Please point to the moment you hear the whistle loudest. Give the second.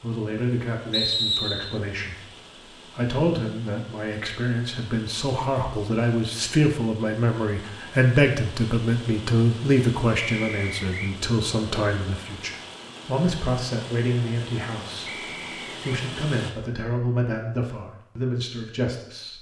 1 s.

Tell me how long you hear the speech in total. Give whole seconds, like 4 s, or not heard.
19 s.